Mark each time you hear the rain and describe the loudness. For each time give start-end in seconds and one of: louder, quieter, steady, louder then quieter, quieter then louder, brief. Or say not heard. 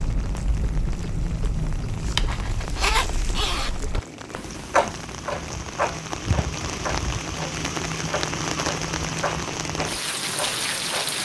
0.0-11.1 louder.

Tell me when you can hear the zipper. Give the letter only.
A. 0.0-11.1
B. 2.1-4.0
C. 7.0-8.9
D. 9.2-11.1
B.